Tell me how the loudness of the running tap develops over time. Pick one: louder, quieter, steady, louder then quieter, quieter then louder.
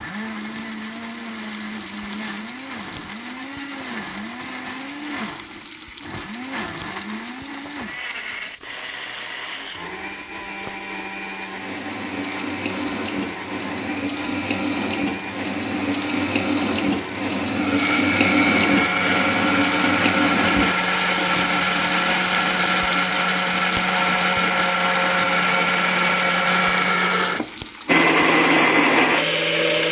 louder then quieter.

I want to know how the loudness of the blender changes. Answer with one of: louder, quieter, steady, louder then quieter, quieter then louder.
louder.